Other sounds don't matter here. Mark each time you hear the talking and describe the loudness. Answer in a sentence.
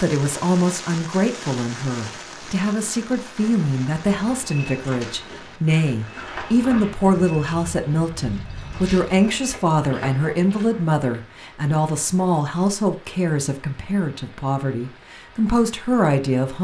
You can hear the talking from 0.0 to 16.5 s, at a steady volume.